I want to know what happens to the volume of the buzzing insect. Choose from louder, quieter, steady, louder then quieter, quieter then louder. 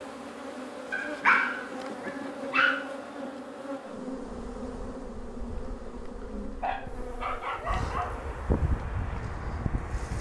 quieter.